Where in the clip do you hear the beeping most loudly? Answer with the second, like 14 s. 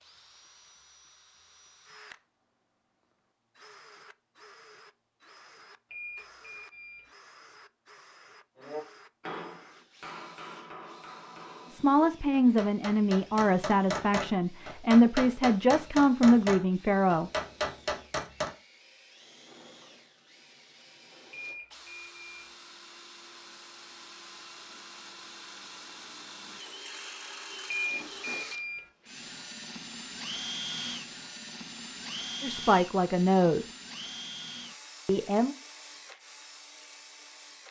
28 s.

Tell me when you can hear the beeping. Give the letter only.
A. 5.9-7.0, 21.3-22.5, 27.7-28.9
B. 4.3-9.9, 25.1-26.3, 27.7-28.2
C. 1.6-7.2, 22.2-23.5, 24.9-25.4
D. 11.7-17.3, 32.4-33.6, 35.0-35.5
A.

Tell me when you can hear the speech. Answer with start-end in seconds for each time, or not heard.
11.7-17.3, 32.4-33.6, 35.0-35.5.